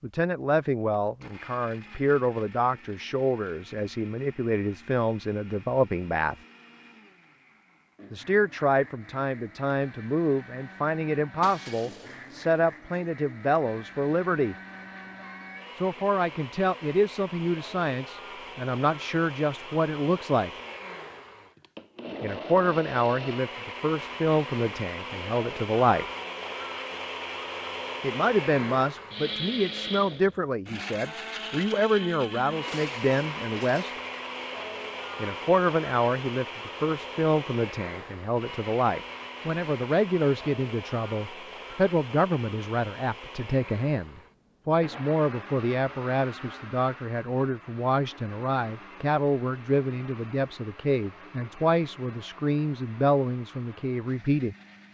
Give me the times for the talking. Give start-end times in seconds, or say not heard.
0.0-6.3, 8.1-14.6, 15.8-20.5, 22.2-26.1, 28.0-34.0, 35.1-54.5.